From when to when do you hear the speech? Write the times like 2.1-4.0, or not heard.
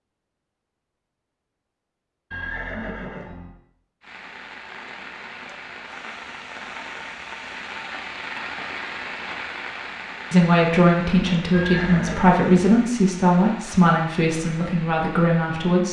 10.3-15.8.